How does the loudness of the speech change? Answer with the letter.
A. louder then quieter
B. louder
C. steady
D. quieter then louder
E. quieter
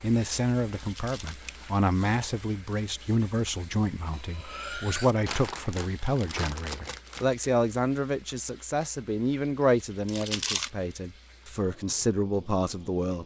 C.